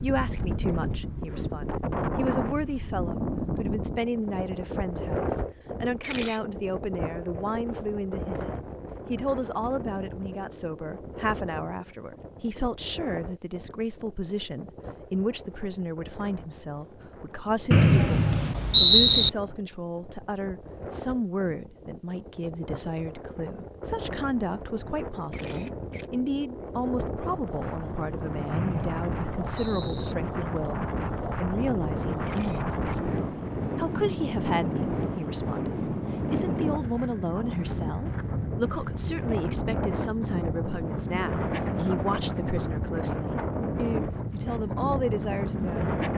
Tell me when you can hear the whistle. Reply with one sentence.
The whistle can be heard from 17.7 to 19.3 s and from 28.5 to 30.1 s.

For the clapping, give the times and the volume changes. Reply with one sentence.
You can't hear the clapping here.